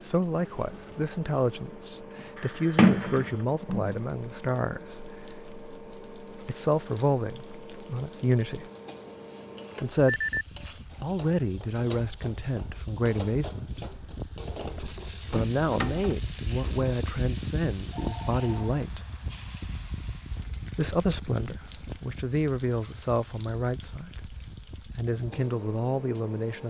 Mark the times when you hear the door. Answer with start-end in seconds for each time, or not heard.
2.8-4.0, 14.7-16.1.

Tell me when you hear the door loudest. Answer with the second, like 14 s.
3 s.